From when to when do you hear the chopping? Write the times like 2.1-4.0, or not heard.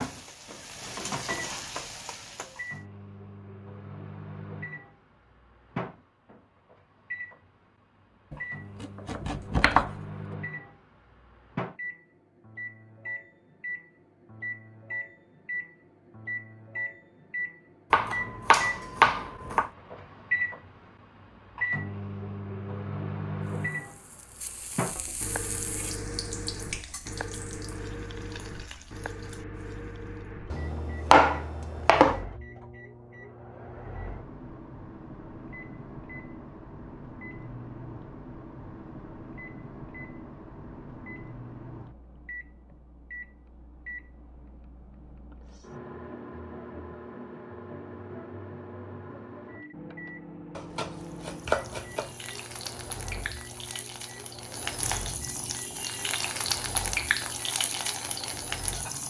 8.3-9.9, 17.9-19.7, 30.5-32.2, 50.5-52.1.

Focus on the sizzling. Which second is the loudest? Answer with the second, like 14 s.
57 s.